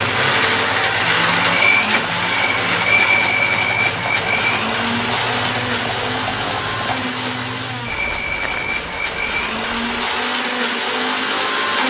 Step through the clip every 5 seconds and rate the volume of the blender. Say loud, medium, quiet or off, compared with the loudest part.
loud, medium, loud.